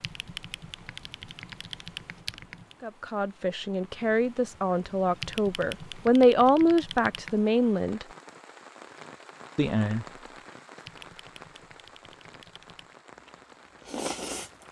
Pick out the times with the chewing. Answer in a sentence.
The chewing can be heard from 13.2 to 14.6 s.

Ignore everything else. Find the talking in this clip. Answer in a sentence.
You can hear the talking from 2.8 to 8.1 s and from 9.6 to 10.1 s.